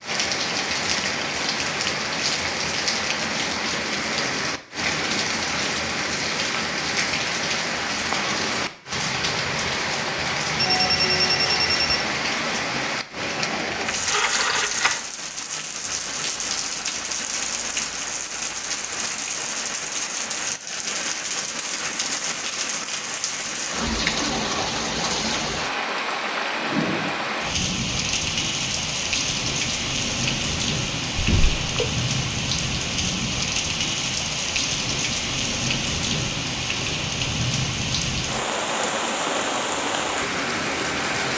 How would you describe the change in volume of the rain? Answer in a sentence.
The loudness of the rain stays about the same.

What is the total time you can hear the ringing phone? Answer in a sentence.
You can hear the ringing phone for 3 seconds altogether.